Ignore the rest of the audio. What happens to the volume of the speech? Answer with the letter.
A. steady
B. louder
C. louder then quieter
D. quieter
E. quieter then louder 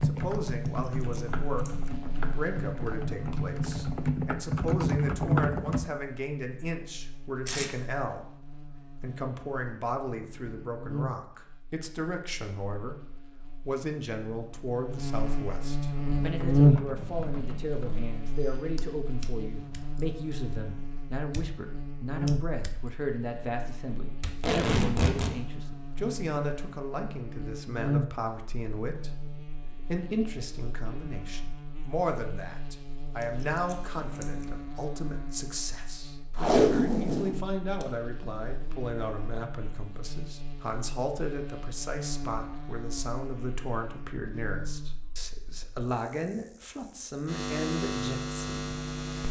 A.